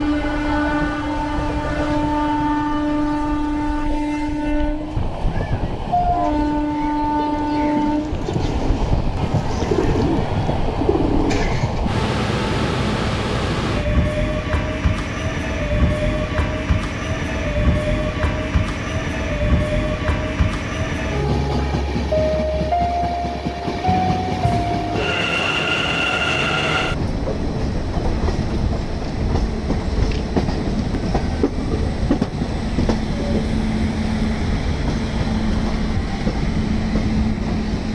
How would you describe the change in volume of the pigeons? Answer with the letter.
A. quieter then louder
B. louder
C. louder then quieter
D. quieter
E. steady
B.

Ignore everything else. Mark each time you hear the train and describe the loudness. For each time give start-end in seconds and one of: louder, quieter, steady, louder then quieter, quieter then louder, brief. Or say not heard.
0.0-37.9 steady.